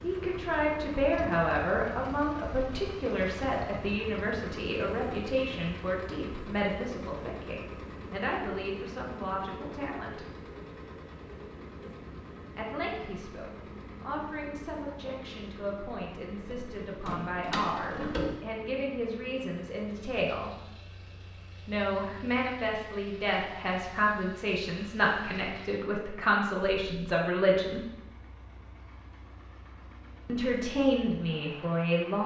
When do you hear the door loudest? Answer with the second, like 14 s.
18 s.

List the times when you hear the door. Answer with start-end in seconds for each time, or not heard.
16.4-18.4.